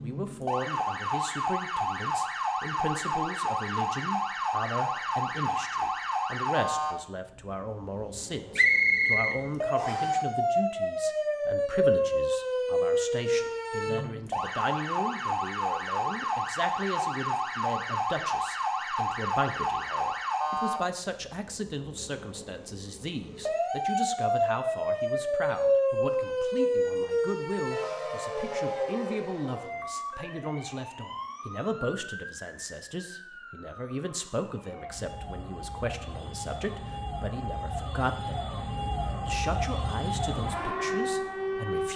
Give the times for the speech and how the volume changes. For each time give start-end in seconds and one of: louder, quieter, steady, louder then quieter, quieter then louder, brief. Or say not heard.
0.0-41.9 steady.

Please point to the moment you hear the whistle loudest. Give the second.
9 s.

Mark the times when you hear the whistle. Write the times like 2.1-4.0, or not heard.
8.6-10.2.